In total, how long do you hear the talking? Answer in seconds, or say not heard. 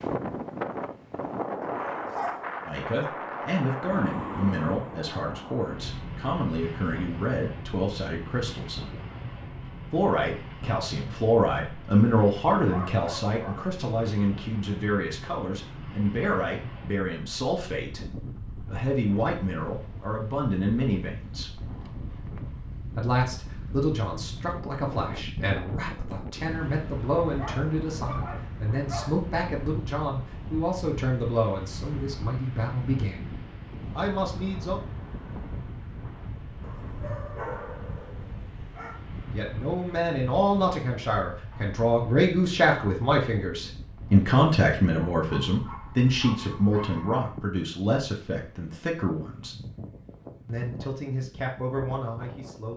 42 s.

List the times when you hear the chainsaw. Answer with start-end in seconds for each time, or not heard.
not heard.